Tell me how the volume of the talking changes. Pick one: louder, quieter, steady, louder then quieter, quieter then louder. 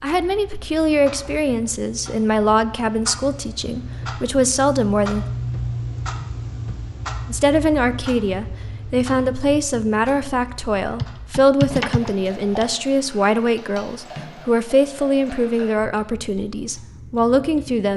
steady.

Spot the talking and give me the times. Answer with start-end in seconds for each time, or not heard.
0.0-5.2, 7.2-17.9.